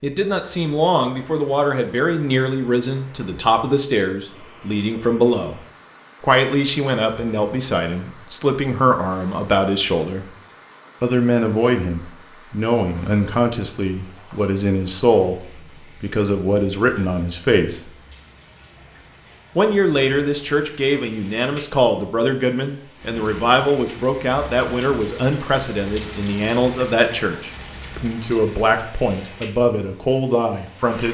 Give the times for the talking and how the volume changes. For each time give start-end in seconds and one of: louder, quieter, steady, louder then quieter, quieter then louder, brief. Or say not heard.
0.0-5.6 steady
6.2-10.3 steady
11.0-17.9 steady
19.6-31.0 steady.